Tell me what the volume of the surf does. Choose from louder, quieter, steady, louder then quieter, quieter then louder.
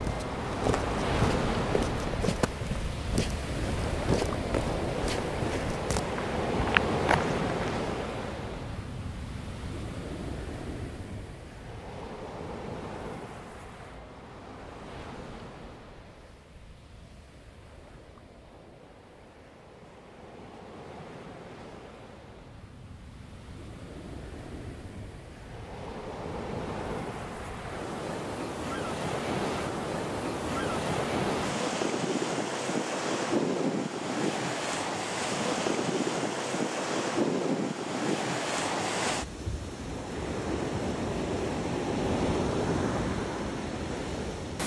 quieter then louder.